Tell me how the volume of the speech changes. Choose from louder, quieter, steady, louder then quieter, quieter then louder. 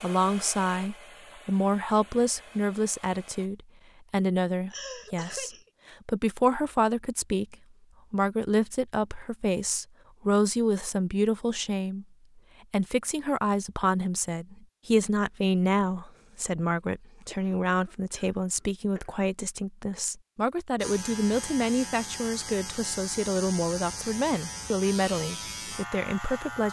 steady.